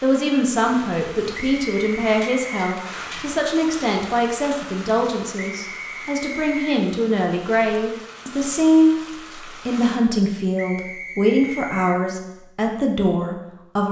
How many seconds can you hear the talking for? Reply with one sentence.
You can hear the talking for 14 seconds altogether.